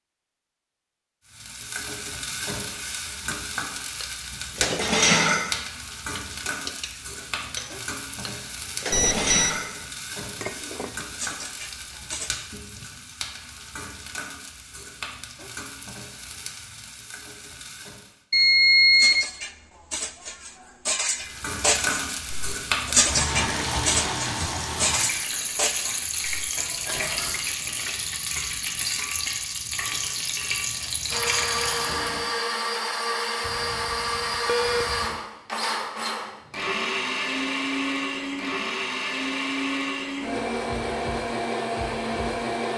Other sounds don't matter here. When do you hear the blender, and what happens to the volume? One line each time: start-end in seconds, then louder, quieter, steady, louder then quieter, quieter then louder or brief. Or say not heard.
31.1-42.7 steady.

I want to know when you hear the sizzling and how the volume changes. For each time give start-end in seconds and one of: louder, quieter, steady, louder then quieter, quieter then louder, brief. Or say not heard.
1.2-18.2 quieter
21.1-32.3 steady.